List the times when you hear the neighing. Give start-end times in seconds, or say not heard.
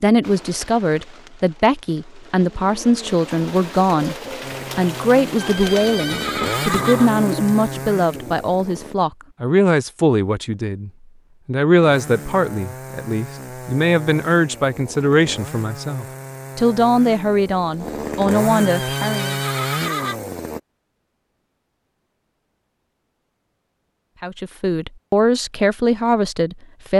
5.3-7.1, 18.6-20.2.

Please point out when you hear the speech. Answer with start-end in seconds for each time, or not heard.
0.0-4.2, 4.8-19.4, 24.2-26.9.